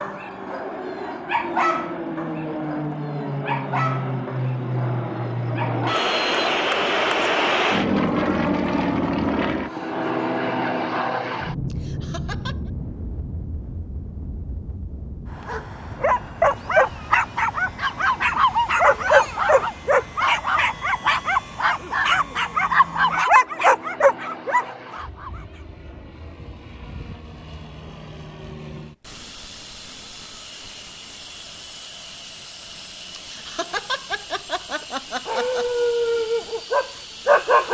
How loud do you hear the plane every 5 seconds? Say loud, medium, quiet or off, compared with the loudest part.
medium, loud, medium, quiet, quiet, quiet, quiet, quiet.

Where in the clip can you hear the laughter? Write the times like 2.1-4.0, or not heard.
11.7-12.7, 33.1-35.6.